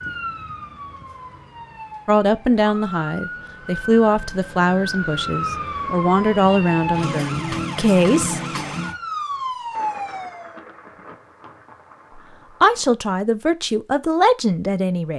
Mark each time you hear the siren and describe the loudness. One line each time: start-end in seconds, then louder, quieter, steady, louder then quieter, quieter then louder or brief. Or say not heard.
0.0-10.6 louder.